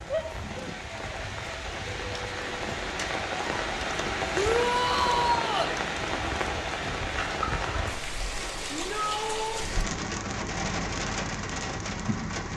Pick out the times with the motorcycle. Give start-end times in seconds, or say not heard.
9.6-12.5.